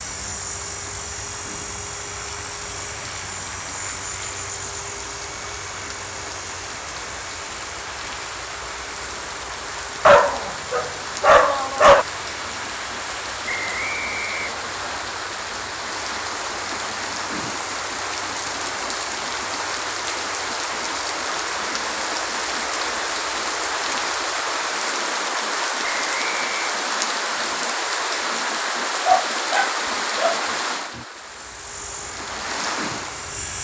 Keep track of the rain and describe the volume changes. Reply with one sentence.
The loudness of the rain goes up.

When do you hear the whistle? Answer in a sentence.
You can hear the whistle from 13.4 to 15.0 s and from 25.8 to 26.8 s.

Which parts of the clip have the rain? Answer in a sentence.
The rain can be heard from 0.0 to 33.5 s.